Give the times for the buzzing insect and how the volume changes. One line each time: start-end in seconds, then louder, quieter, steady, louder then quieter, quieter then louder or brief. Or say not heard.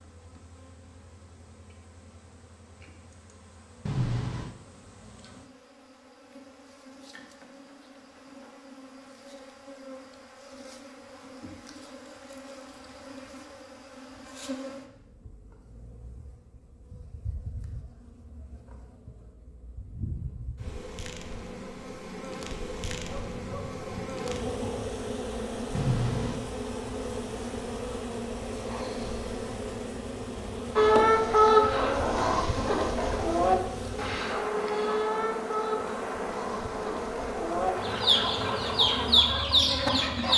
0.0-40.3 louder.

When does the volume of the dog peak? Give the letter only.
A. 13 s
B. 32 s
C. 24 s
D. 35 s
C.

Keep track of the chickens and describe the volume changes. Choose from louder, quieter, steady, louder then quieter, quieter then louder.
quieter then louder.